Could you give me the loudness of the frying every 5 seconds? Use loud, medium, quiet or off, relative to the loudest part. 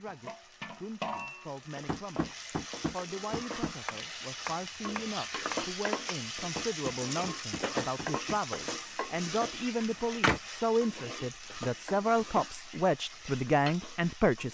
medium, loud, medium.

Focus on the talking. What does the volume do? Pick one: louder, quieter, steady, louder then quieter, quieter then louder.
louder.